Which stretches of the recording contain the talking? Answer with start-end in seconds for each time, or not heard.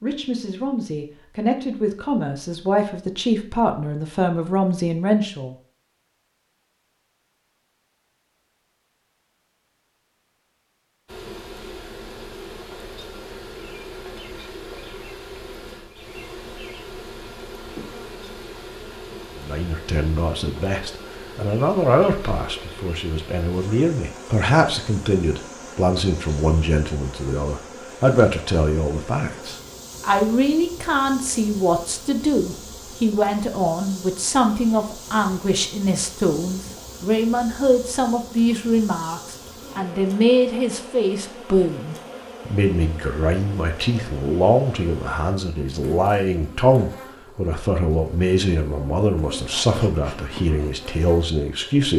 0.0-5.5, 19.4-51.9.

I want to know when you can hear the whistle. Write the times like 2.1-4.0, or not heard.
not heard.